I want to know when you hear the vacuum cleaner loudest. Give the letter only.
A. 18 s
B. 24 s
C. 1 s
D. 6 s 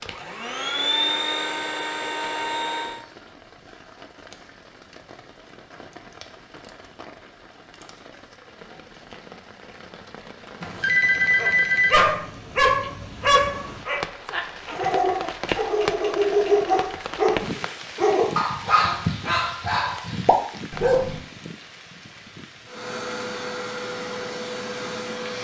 C.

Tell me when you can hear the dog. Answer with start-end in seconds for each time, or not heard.
11.4-21.2.